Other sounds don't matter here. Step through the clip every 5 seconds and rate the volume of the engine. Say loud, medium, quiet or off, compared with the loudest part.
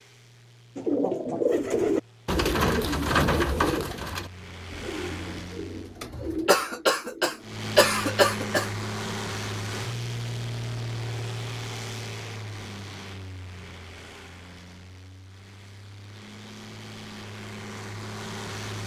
quiet, loud, loud, medium.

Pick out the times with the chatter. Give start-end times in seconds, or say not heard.
not heard.